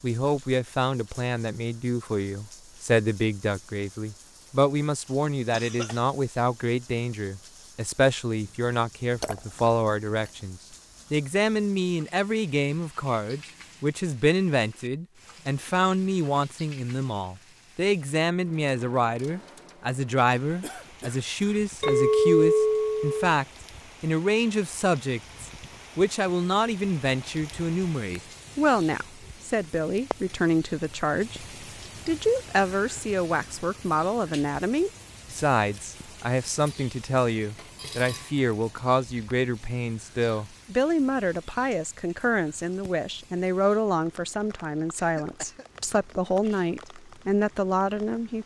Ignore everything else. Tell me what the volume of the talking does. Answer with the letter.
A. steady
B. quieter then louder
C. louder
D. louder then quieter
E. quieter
A.